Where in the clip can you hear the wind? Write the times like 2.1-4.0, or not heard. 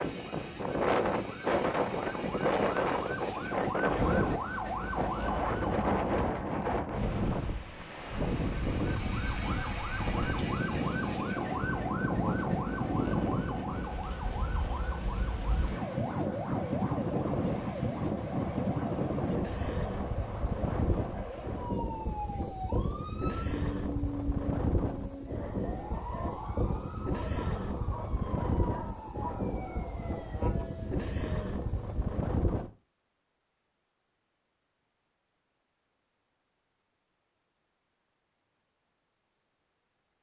0.0-32.7.